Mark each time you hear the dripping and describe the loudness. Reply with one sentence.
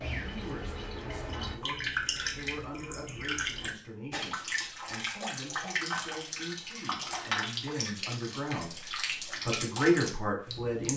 You can hear the dripping from 0.0 to 10.9 s, at a steady volume.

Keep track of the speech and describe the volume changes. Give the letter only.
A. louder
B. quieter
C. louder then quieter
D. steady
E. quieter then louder
A.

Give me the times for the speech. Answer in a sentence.
The speech can be heard from 0.0 to 10.9 s.